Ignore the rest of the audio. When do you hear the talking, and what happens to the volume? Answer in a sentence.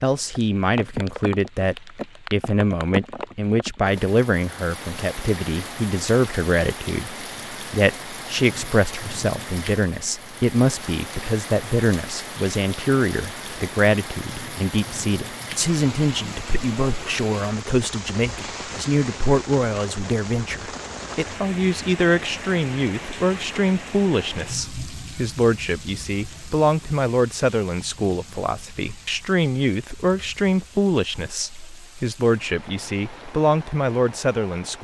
You can hear the talking from 0.0 to 34.8 s, at a steady volume.